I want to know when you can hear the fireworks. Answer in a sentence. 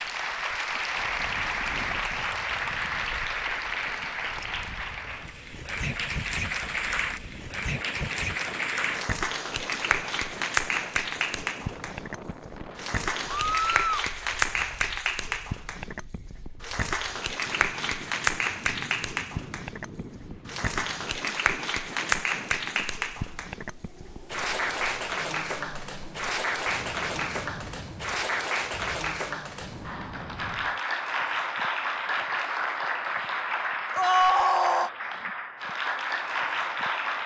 You can't hear the fireworks here.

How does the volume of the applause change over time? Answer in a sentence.
The volume of the applause stays about the same.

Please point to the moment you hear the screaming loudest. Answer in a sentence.
The volume of the screaming peaks at 34 seconds.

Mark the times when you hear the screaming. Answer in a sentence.
The screaming can be heard from 13.5 to 14.1 s and from 34.0 to 34.9 s.